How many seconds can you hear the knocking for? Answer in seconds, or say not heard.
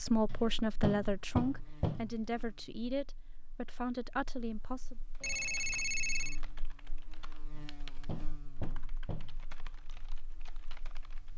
4 s.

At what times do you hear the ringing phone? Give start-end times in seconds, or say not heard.
5.2-6.4.